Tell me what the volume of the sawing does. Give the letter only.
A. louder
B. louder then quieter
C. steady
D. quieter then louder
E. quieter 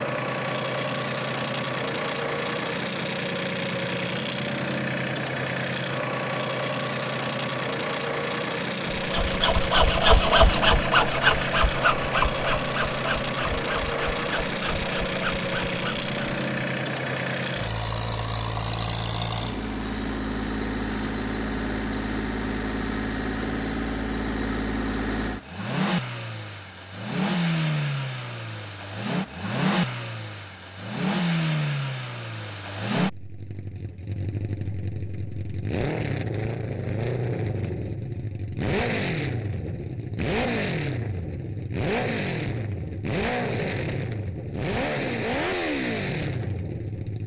E.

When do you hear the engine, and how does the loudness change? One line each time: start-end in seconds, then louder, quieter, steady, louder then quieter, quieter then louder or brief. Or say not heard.
0.0-47.2 steady.